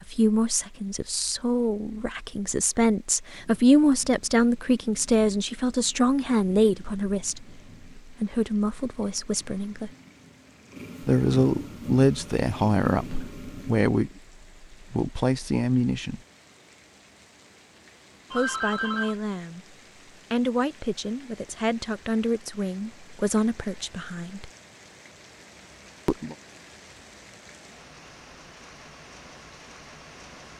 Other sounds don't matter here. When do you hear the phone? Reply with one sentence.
The phone can be heard from 18.3 to 19.1 s.